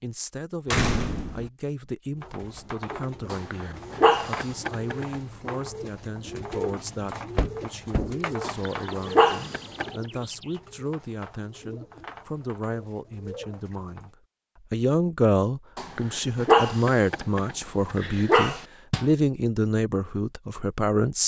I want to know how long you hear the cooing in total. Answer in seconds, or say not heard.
12 s.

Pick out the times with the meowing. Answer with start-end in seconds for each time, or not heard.
not heard.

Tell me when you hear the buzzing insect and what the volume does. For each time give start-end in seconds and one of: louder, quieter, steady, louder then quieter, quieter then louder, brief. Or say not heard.
not heard.